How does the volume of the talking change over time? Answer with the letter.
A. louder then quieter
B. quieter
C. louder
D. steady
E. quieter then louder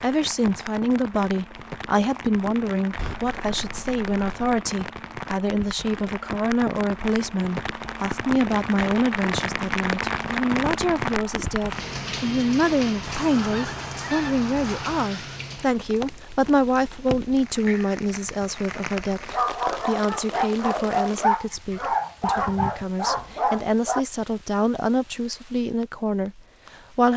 D.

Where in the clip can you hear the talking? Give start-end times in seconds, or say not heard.
0.0-27.1.